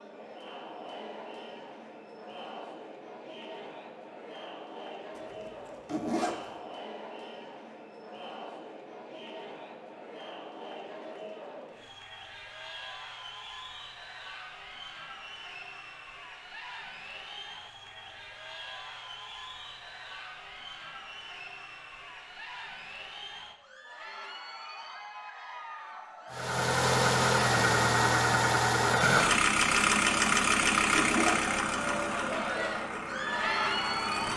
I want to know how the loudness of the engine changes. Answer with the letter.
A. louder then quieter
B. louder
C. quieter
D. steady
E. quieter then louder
C.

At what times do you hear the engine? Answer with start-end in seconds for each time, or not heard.
26.3-34.3.